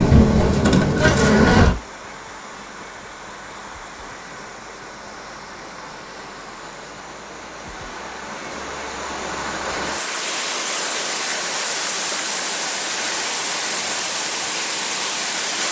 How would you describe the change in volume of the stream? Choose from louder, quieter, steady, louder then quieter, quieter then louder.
louder.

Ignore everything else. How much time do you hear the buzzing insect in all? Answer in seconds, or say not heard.
2 s.